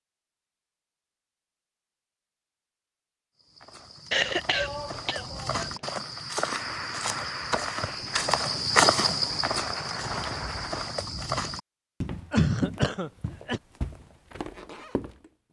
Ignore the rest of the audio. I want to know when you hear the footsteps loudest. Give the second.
9 s.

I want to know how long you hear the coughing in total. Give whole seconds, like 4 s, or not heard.
3 s.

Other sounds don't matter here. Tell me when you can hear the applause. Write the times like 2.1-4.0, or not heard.
6.1-11.1.